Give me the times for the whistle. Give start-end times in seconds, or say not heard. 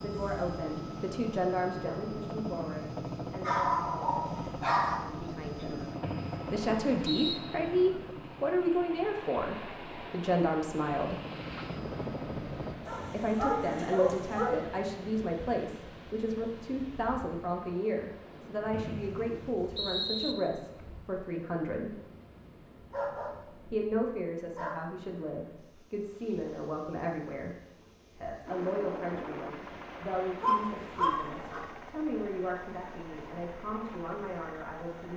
6.0-7.4, 18.7-20.4.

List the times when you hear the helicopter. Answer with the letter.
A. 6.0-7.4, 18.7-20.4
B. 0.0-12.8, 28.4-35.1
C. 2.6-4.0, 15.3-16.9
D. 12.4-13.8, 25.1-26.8
B.